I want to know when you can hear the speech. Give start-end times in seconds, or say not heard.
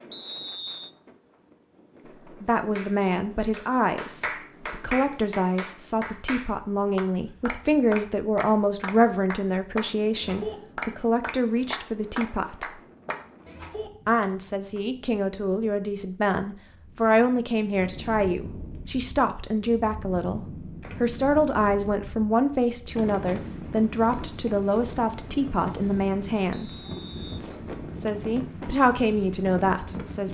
2.4-12.8, 14.1-26.8, 27.4-30.2.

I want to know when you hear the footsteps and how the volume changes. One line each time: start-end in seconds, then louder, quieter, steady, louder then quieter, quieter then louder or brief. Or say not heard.
not heard.